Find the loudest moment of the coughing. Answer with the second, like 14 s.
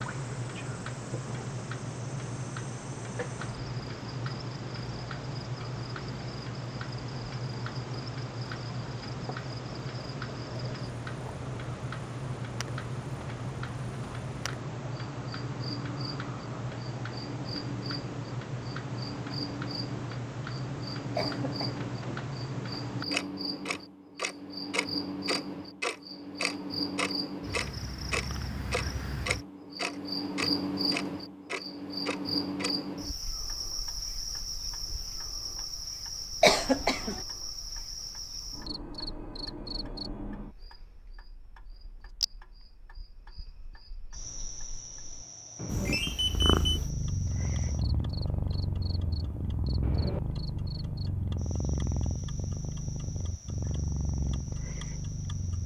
37 s.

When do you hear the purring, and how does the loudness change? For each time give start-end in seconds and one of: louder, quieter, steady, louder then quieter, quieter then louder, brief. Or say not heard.
45.7-55.6 steady.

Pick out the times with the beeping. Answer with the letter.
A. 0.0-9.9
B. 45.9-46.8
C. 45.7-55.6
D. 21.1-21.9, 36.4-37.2
B.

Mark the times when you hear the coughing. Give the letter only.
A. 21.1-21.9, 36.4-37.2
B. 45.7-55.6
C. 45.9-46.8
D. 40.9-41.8
A.